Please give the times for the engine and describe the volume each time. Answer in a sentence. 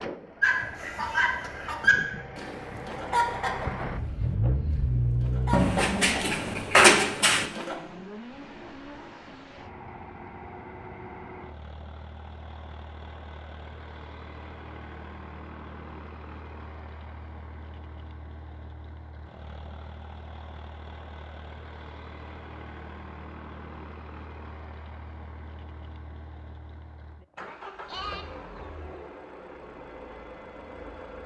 The engine can be heard from 0.0 to 31.2 s, getting quieter.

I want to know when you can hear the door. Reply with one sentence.
You can hear the door from 5.5 to 7.5 s.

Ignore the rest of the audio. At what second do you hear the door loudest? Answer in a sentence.
The loudest moment of the door is at 7 seconds.